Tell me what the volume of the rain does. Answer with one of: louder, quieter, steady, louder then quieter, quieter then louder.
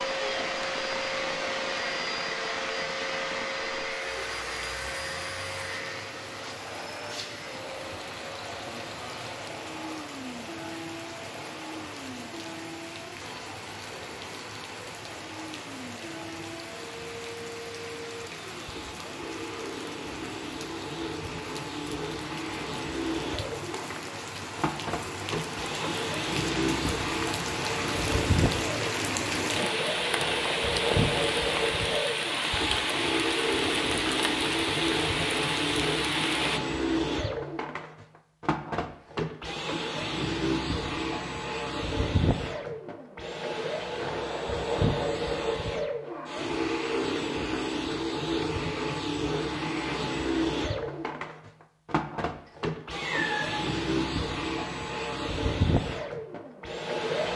louder.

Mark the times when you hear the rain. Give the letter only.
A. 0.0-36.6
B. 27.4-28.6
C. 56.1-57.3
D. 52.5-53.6
A.